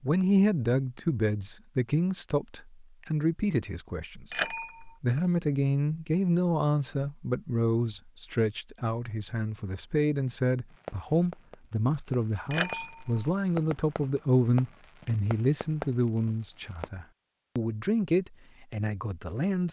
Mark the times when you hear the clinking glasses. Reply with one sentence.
The clinking glasses can be heard from 4.3 to 5.0 s and from 12.5 to 13.2 s.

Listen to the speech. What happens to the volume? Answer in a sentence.
The volume of the speech stays about the same.